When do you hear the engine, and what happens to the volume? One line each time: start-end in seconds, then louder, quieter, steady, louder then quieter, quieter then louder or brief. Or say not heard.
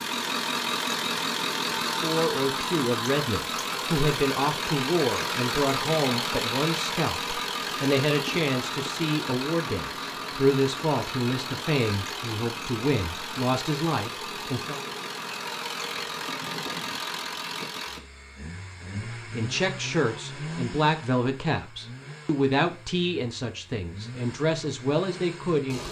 0.0-25.8 quieter.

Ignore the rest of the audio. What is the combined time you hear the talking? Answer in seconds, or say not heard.
20 s.